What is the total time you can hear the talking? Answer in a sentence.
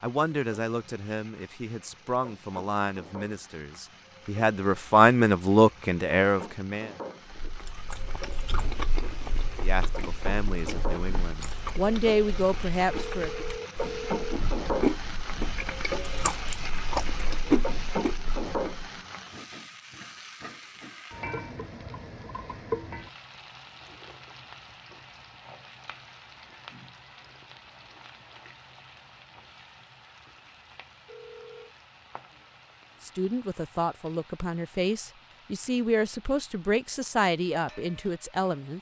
The talking can be heard for 16 seconds in total.